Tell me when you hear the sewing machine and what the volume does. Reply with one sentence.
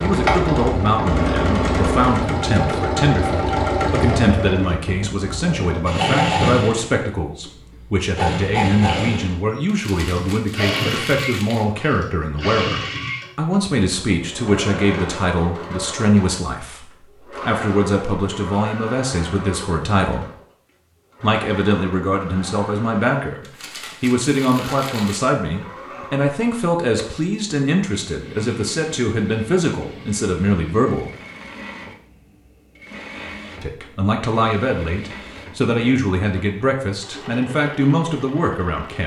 The sewing machine can be heard from 0.0 to 39.0 s, getting quieter.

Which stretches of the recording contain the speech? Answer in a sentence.
You can hear the speech from 0.0 to 20.3 s, from 21.2 to 31.1 s and from 33.6 to 39.0 s.